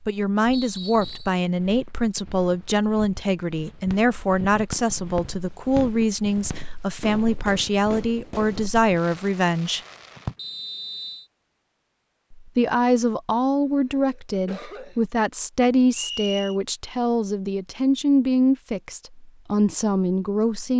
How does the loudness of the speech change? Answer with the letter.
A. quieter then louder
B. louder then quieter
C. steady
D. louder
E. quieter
C.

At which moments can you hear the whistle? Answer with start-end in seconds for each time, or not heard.
0.5-1.4, 10.3-11.2, 15.9-16.6.